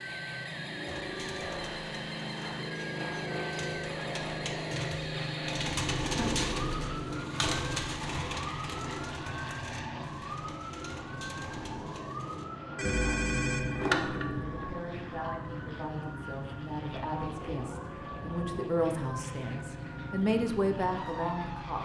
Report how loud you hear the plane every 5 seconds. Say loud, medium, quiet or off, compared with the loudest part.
loud, loud, medium, medium, medium.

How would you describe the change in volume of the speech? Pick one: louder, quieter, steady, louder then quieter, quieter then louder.
louder.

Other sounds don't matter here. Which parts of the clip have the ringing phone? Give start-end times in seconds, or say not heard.
12.8-14.4.